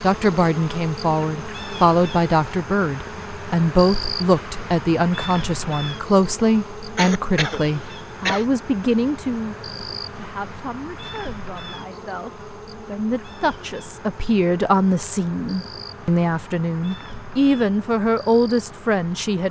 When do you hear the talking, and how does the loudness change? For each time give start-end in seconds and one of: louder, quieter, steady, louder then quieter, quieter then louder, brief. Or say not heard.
0.0-9.6 steady
10.2-19.4 louder.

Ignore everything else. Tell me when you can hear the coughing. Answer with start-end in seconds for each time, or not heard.
7.0-8.4.